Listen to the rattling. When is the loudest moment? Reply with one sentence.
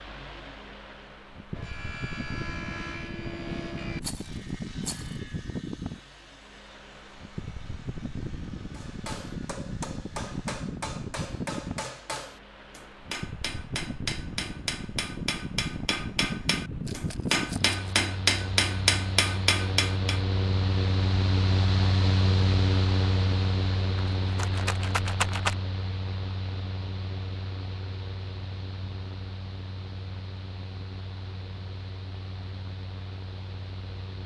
The volume of the rattling peaks at 25 seconds.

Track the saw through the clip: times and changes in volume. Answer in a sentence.
The saw can be heard from 1.5 to 10.6 s, getting quieter.